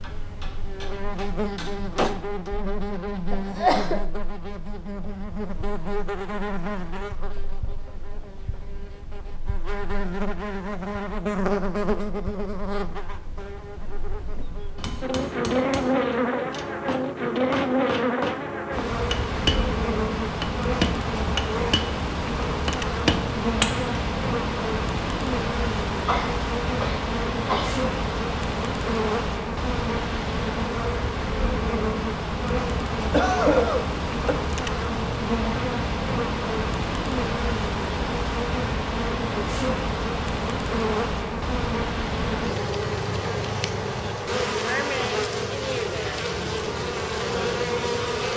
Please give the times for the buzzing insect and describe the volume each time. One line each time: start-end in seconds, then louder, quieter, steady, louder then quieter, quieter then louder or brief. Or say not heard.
0.0-48.3 louder.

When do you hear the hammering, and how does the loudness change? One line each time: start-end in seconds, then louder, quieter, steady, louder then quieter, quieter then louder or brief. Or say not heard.
0.0-2.5 brief
14.8-23.9 louder.